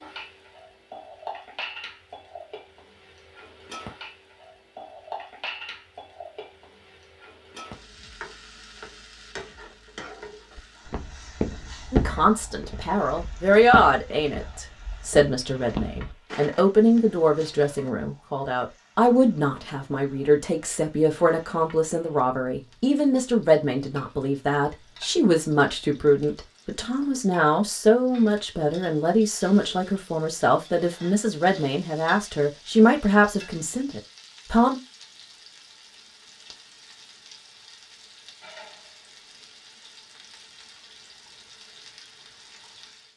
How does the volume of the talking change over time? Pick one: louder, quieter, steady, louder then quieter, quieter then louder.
steady.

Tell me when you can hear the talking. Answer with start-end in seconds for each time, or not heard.
11.9-34.8.